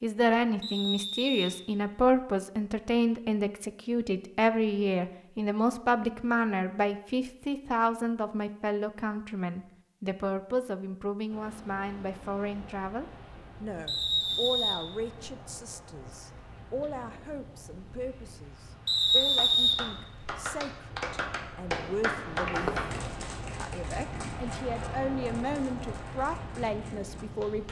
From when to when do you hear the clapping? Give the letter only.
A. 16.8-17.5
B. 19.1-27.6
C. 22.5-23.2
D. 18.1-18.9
B.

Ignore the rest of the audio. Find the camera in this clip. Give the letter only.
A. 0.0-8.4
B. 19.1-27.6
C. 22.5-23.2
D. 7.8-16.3
C.